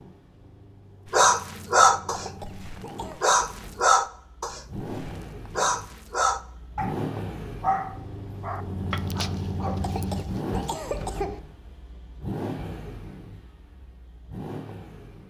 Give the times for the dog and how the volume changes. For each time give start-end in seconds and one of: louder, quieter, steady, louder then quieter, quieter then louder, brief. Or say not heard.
1.1-11.1 quieter.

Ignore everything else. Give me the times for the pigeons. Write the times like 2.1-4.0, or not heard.
not heard.